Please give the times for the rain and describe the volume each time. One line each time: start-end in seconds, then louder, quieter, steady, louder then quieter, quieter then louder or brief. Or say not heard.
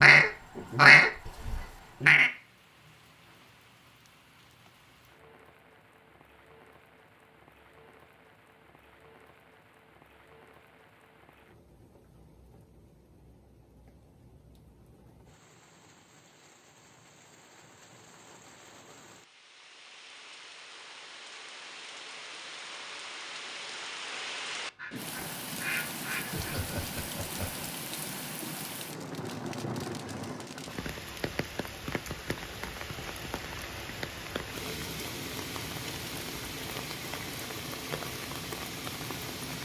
0.2-39.5 louder.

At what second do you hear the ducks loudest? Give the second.
1 s.